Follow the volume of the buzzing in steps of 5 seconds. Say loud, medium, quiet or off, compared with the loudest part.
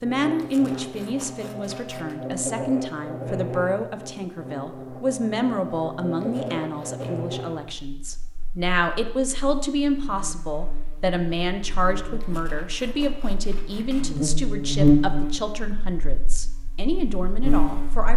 medium, medium, loud, medium.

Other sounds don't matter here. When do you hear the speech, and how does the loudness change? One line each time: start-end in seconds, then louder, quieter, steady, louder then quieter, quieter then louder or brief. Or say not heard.
0.0-18.1 steady.